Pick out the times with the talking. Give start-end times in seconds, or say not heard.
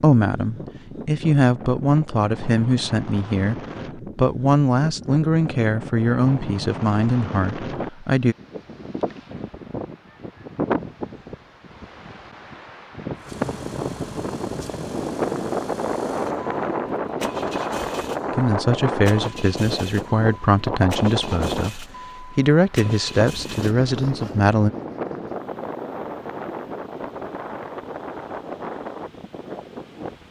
0.0-8.3, 18.3-24.7.